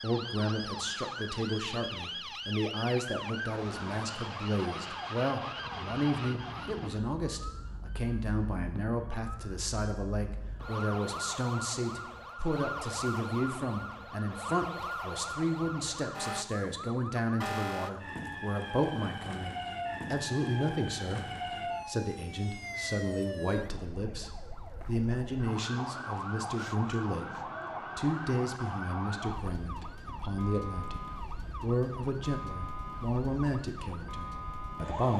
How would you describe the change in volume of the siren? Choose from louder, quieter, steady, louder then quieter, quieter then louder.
steady.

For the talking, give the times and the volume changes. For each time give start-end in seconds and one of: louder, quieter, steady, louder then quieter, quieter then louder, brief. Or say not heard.
0.0-35.1 steady.